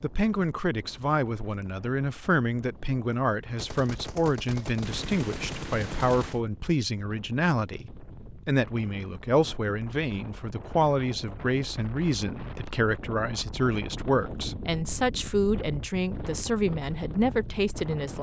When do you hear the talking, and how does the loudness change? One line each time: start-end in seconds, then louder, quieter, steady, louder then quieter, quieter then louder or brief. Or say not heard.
0.0-18.1 steady.